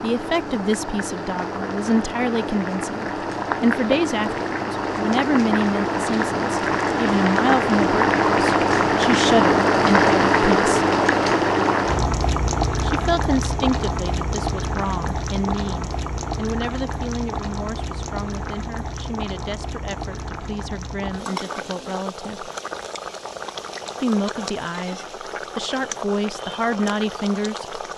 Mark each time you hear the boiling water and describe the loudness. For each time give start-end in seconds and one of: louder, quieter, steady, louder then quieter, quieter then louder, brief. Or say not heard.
0.0-27.9 louder then quieter.